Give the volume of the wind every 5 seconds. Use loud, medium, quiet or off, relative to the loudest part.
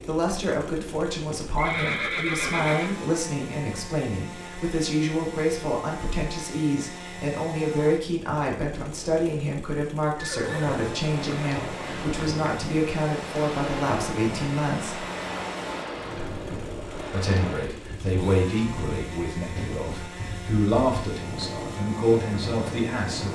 off, off, loud, loud, loud.